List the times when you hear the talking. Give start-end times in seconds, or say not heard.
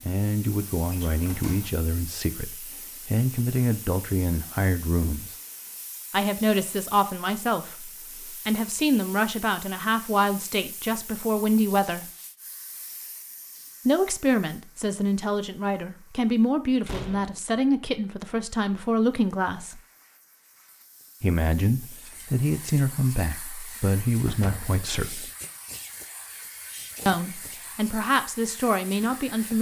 0.1-5.3, 6.1-12.1, 13.8-19.8, 21.2-25.2, 27.1-29.5.